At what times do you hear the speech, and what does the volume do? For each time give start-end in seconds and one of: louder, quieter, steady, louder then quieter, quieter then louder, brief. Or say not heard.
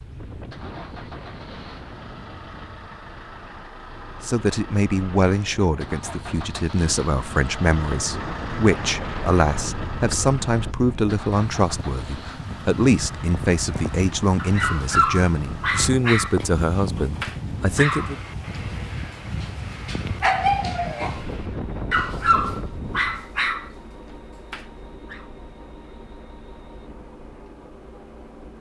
4.2-18.1 steady.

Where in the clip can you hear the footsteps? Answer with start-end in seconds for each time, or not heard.
not heard.